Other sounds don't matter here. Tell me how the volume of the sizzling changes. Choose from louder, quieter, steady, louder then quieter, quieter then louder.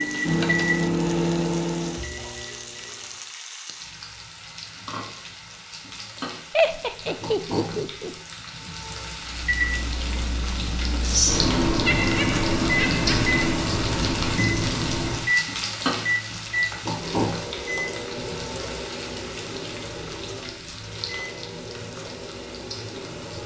louder then quieter.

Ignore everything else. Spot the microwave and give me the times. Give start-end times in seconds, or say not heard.
0.0-3.2, 9.2-23.4.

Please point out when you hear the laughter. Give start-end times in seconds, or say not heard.
6.5-8.2, 11.8-13.4.